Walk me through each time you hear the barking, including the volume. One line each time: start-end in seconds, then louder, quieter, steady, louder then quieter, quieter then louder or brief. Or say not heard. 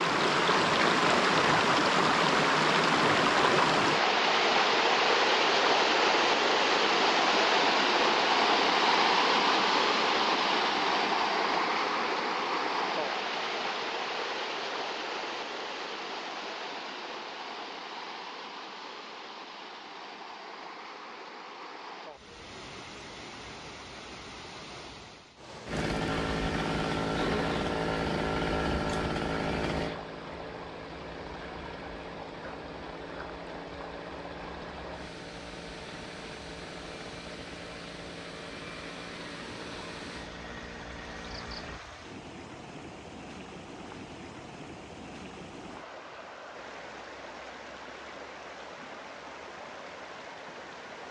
not heard.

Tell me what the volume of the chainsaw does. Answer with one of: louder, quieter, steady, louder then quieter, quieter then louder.
quieter.